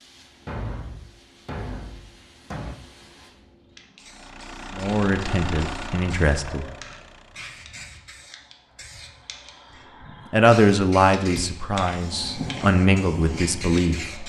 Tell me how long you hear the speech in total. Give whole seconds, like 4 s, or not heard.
6 s.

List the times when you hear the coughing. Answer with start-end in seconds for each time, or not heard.
not heard.